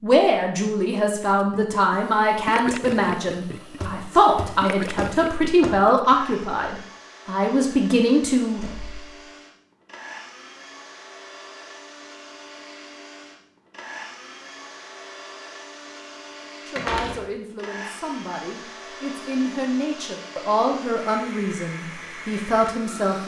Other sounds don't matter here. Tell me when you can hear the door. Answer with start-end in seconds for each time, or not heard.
3.8-5.8, 8.6-9.1, 16.8-17.2.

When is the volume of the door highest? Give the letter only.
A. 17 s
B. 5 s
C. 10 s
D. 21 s
A.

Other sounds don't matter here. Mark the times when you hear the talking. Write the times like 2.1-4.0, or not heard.
0.0-8.6, 16.6-23.2.